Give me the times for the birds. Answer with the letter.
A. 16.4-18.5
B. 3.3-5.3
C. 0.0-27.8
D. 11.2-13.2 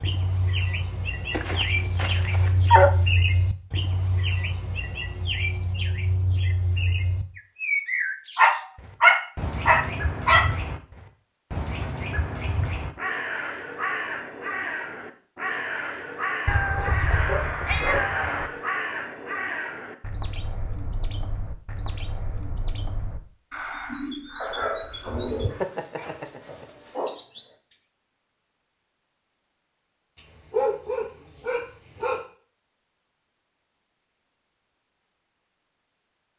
C.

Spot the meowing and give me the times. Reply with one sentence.
You can hear the meowing from 16.4 to 18.5 s.